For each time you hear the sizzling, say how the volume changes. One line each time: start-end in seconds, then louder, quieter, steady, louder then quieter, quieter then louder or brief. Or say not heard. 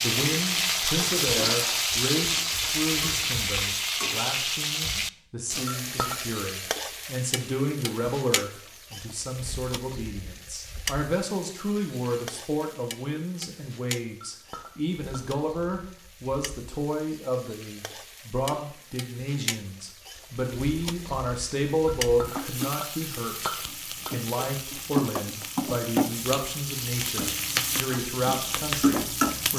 0.0-29.5 quieter then louder.